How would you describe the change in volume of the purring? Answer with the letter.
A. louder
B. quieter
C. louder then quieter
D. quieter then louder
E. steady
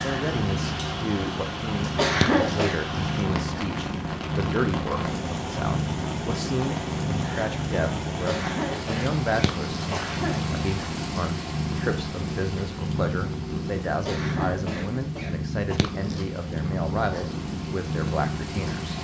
E.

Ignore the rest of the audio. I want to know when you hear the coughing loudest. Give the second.
2 s.